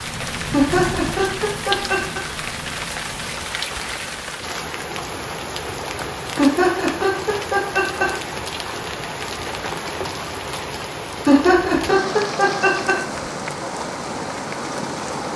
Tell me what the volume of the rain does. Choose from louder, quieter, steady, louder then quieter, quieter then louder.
steady.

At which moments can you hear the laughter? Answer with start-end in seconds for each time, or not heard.
0.5-2.2, 6.3-8.1, 11.2-12.9.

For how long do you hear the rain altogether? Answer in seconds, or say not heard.
15 s.